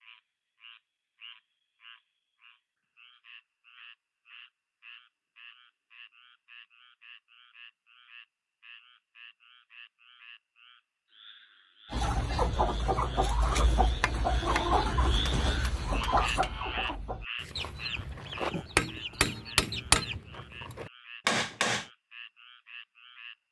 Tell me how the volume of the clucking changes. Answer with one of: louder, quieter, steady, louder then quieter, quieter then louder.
quieter.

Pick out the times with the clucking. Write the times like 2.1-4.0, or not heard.
11.9-20.2.